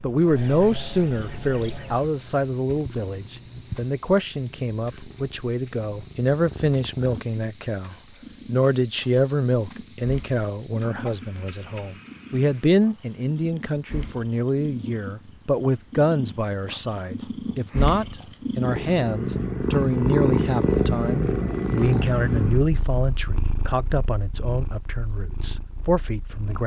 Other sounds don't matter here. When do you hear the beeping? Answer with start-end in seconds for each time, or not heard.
not heard.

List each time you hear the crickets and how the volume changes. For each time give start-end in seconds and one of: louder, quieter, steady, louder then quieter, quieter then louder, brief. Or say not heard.
0.2-26.6 quieter.